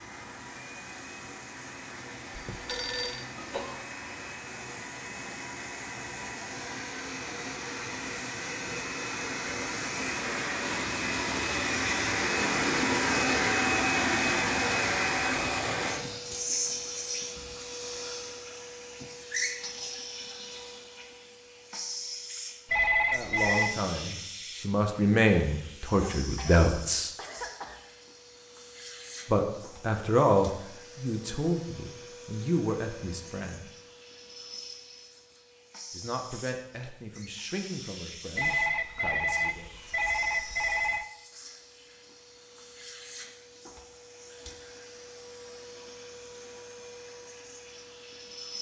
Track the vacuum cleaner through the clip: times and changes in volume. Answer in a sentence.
You can hear the vacuum cleaner from 0.0 to 48.5 s, getting louder then quieter.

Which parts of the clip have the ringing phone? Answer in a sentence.
The ringing phone can be heard from 2.4 to 3.2 s, from 22.6 to 23.8 s and from 38.4 to 41.0 s.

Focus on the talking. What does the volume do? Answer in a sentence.
The loudness of the talking goes down.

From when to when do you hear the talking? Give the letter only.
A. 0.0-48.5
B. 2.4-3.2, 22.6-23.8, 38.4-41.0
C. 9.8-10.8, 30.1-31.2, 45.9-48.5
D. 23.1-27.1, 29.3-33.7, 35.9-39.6
D.